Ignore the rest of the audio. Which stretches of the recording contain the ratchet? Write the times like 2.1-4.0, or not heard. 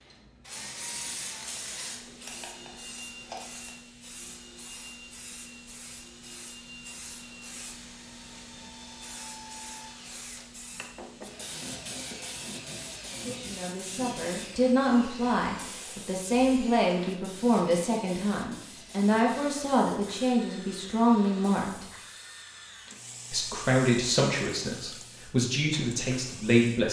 1.9-3.8.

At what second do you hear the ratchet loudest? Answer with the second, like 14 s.
3 s.